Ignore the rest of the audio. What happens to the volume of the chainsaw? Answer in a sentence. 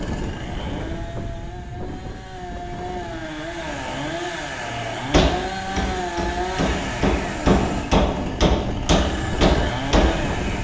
The volume of the chainsaw goes up.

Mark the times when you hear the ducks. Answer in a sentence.
You can't hear the ducks here.